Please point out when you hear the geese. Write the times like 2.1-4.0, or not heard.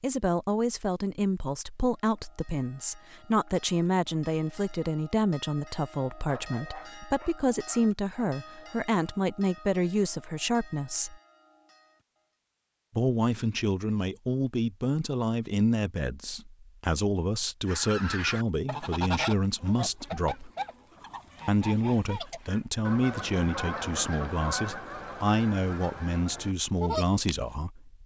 17.6-27.4.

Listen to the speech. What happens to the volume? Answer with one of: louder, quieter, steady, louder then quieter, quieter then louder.
steady.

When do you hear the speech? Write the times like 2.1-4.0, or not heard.
0.0-11.2, 12.9-20.5, 21.4-28.0.